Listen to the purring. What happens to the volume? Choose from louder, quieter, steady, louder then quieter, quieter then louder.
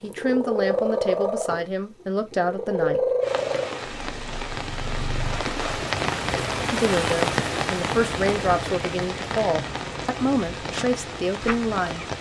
quieter.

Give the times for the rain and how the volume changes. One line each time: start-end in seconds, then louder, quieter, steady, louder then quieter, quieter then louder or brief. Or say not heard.
3.2-12.1 louder then quieter.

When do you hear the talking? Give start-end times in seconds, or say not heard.
0.0-3.0, 6.7-12.1.